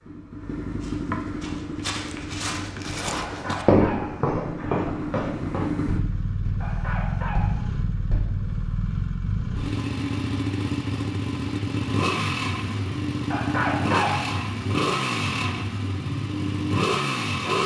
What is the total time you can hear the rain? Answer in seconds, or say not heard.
not heard.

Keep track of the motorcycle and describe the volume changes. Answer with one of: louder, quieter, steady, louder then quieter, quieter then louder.
louder.